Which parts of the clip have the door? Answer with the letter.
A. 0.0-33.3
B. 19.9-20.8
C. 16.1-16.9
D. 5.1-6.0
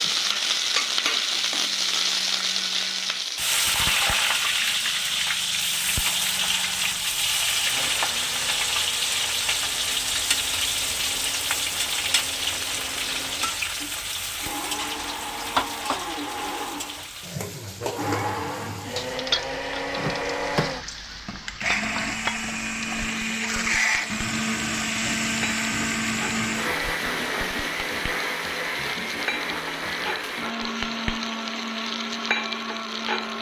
B.